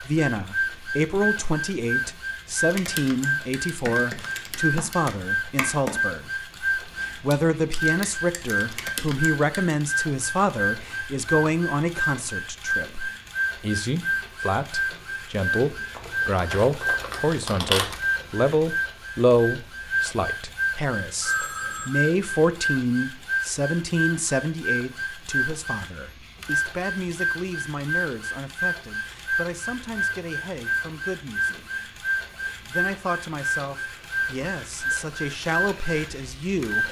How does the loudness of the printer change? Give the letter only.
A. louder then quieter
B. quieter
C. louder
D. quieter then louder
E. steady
E.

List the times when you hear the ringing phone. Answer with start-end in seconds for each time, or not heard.
21.2-21.9.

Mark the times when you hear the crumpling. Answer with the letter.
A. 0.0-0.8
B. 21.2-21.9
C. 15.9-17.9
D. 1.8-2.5
C.